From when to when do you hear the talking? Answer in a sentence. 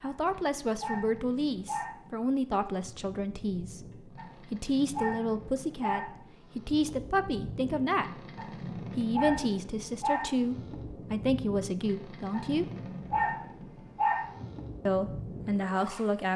You can hear the talking from 0.0 to 8.2 s, from 8.9 to 12.7 s and from 14.8 to 16.3 s.